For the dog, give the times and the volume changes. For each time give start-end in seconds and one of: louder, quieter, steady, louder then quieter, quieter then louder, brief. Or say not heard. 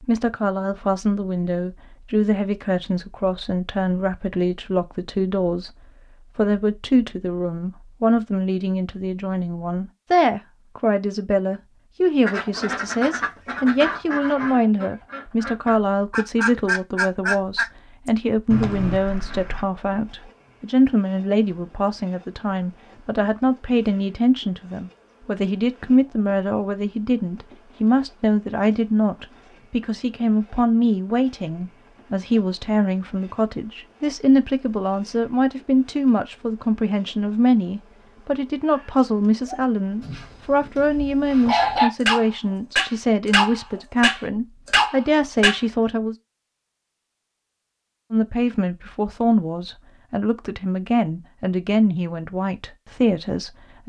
39.5-45.6 louder.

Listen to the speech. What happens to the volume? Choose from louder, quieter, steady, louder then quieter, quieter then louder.
steady.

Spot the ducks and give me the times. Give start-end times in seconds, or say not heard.
12.2-19.6.